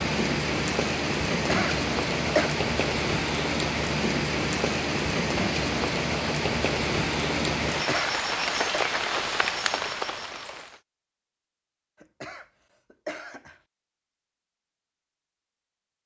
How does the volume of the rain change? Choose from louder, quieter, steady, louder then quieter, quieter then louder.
steady.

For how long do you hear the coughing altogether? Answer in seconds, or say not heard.
4 s.